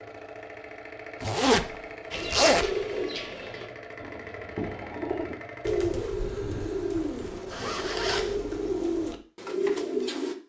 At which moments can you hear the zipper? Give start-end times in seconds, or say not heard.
1.2-2.7, 7.5-8.4.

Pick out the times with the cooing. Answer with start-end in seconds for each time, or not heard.
2.1-10.3.